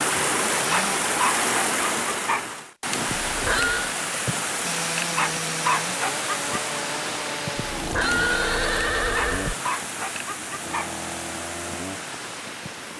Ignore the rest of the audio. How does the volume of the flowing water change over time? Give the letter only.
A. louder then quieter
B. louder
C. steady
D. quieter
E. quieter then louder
D.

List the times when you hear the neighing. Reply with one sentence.
You can hear the neighing from 3.0 to 3.9 s and from 7.7 to 9.6 s.